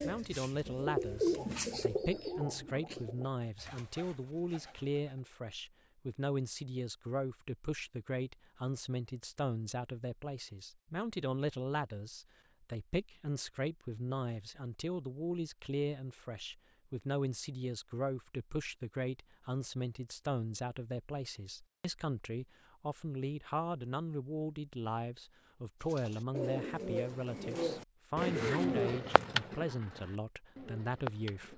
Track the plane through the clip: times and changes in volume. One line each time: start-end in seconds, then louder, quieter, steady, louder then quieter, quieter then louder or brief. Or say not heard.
not heard.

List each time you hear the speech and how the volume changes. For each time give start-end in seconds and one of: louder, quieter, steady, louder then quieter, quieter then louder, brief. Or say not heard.
0.0-31.5 steady.